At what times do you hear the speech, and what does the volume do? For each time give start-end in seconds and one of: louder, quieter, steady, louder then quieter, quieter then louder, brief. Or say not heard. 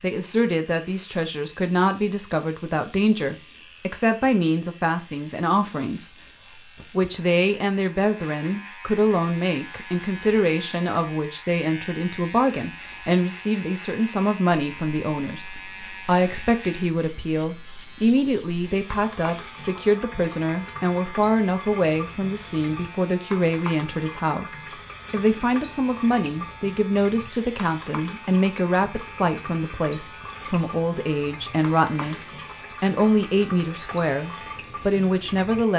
0.0-35.7 steady.